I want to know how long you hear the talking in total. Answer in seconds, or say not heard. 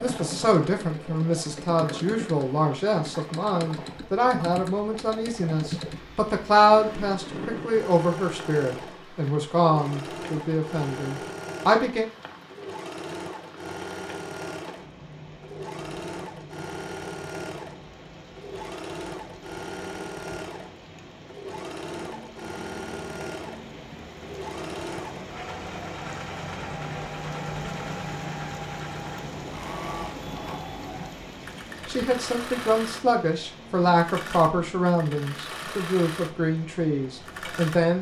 18 s.